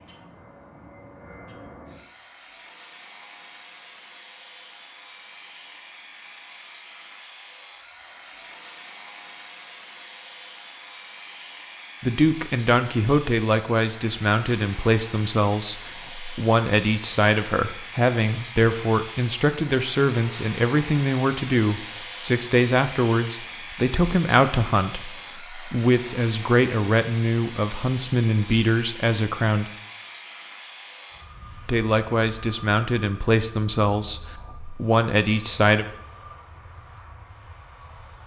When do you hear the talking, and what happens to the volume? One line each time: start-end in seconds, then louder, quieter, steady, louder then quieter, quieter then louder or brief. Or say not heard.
12.0-29.7 steady
31.6-35.9 quieter then louder.